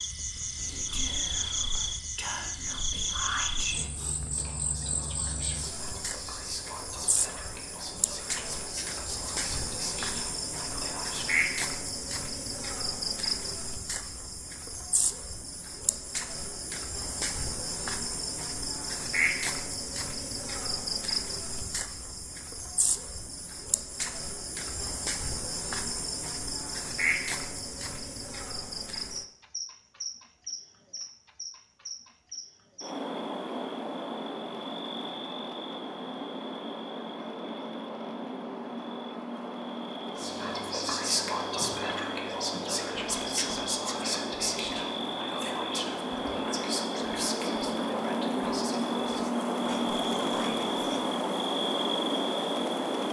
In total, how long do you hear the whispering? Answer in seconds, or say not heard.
22 s.